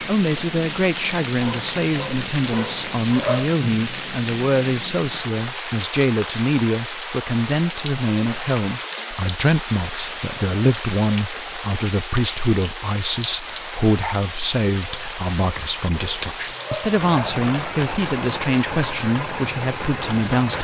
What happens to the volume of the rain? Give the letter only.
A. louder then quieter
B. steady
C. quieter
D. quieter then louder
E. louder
B.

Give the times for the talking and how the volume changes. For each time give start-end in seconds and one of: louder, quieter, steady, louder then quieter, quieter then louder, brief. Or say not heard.
0.0-20.5 steady.